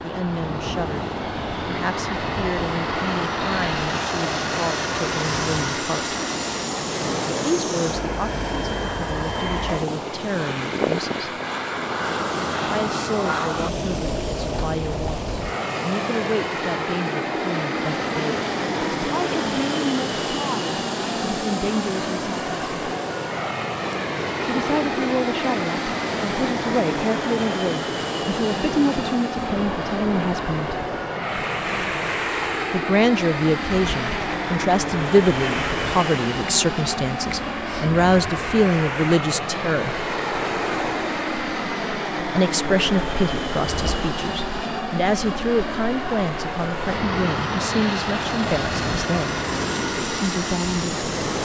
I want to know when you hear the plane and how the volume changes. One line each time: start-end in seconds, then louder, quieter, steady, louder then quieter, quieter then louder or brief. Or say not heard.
0.0-51.3 steady.